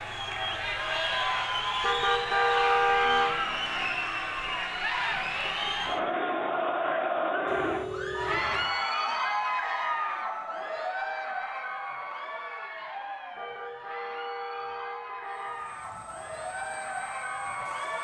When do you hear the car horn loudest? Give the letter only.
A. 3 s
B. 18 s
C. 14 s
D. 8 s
A.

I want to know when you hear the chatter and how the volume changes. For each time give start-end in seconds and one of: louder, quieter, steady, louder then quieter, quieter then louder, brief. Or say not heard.
0.0-17.9 quieter.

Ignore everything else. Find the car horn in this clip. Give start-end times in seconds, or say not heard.
1.8-3.4, 7.5-8.7, 13.3-15.7.